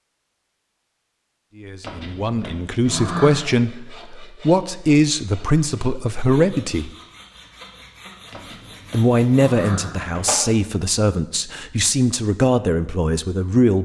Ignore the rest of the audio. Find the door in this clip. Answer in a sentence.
You can hear the door from 1.8 to 3.4 s and from 8.3 to 10.3 s.